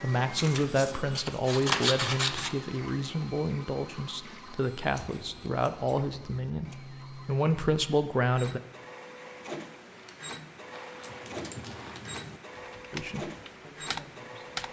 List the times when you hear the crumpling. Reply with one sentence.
The crumpling can be heard from 10.7 to 12.1 s.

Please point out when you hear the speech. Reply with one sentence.
The speech can be heard from 0.0 to 8.6 s and from 12.9 to 14.6 s.